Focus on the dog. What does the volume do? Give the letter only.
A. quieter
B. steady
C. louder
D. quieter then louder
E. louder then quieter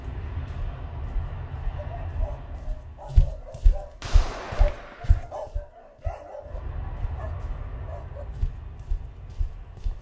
E.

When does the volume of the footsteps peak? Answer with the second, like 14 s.
3 s.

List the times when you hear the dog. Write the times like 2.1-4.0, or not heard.
1.8-8.2.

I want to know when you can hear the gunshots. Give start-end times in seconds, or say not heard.
4.0-5.2.